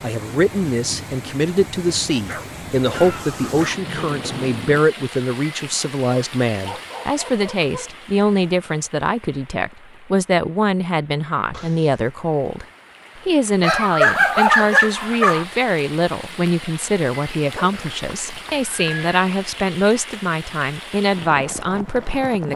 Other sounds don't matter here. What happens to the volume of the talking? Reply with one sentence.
The loudness of the talking stays about the same.